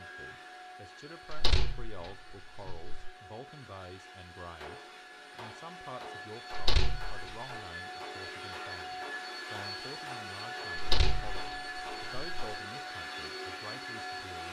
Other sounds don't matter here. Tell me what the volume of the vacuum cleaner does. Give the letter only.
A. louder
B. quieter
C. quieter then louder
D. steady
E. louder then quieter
A.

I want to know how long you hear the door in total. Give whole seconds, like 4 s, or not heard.
4 s.